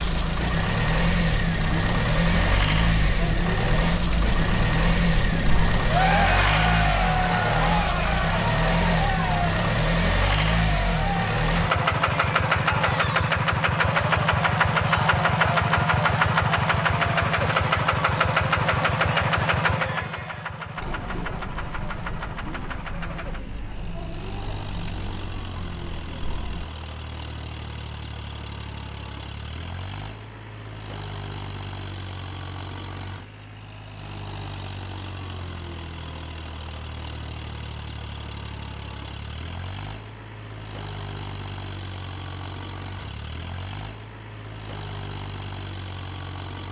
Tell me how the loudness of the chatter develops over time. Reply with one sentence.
The volume of the chatter goes up, then down.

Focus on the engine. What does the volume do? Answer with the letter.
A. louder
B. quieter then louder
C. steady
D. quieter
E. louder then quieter
D.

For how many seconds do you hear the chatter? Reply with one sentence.
The chatter can be heard for 27 seconds in total.